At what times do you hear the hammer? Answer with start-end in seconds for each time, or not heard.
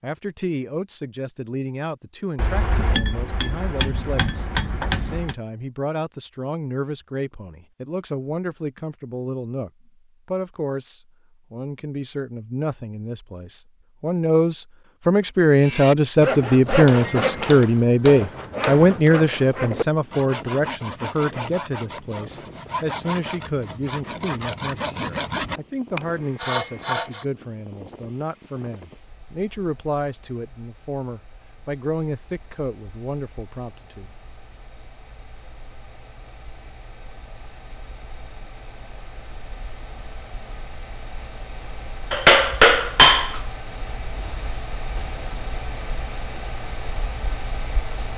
2.4-5.3, 16.9-18.9, 42.1-43.4.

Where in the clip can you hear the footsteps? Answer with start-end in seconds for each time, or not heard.
not heard.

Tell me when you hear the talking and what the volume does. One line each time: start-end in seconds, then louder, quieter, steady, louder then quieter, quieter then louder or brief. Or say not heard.
0.0-34.1 louder then quieter.